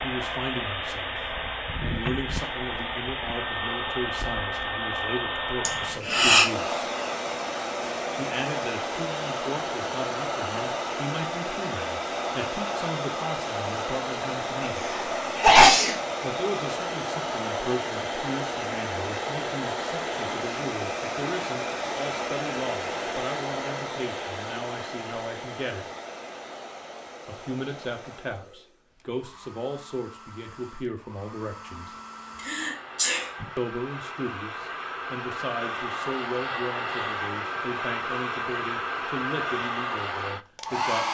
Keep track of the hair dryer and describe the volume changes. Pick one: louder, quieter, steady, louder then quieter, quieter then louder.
quieter then louder.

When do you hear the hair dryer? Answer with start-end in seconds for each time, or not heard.
0.0-41.1.